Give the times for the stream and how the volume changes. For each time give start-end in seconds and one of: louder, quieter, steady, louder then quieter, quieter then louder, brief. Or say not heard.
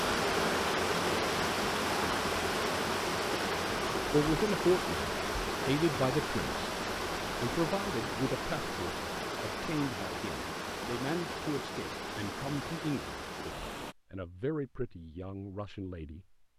0.0-13.9 quieter.